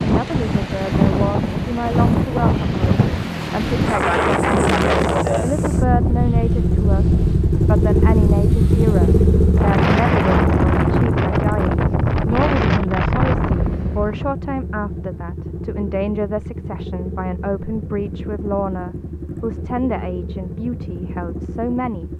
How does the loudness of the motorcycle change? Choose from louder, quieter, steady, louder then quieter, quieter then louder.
louder then quieter.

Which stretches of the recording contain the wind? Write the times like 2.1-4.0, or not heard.
0.0-14.3.